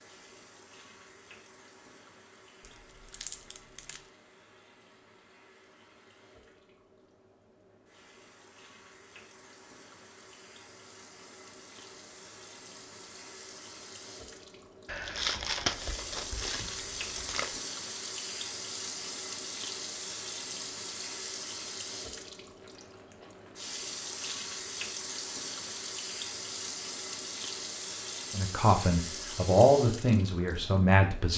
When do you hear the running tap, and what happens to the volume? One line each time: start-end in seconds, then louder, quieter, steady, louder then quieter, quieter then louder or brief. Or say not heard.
0.0-31.3 louder.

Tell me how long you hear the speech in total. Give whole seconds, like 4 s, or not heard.
3 s.